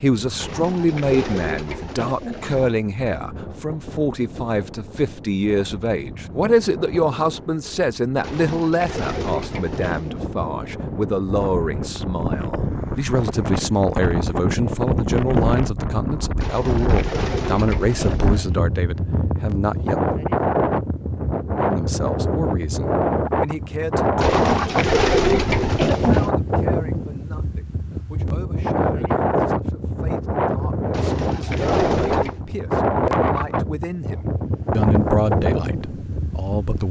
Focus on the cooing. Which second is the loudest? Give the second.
25 s.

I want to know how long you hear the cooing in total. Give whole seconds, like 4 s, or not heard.
10 s.